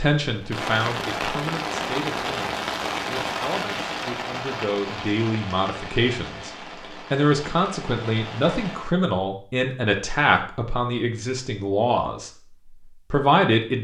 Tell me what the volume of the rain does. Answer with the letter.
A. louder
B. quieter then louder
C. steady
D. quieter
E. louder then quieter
D.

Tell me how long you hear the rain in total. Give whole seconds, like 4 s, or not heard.
9 s.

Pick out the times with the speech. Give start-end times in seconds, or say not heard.
0.0-6.5, 7.1-12.3, 13.1-13.7.